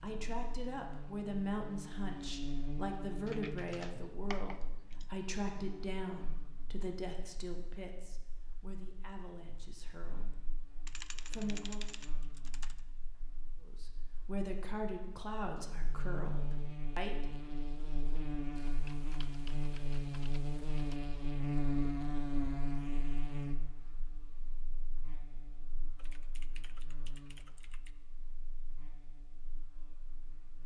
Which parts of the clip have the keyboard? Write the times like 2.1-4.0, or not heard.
3.2-5.3, 10.8-12.8, 18.6-21.0, 25.9-27.9.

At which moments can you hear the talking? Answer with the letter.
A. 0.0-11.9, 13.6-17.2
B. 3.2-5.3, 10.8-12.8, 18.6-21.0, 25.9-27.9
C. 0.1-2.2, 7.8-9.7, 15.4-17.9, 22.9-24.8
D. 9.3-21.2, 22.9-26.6
A.